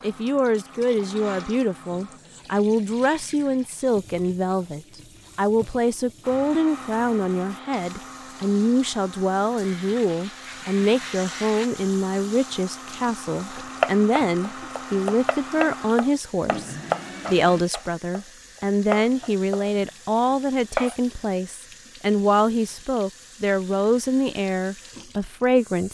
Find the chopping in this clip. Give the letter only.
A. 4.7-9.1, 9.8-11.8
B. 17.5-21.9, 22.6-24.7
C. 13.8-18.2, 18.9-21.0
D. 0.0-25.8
C.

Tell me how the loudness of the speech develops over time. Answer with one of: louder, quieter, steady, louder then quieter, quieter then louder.
steady.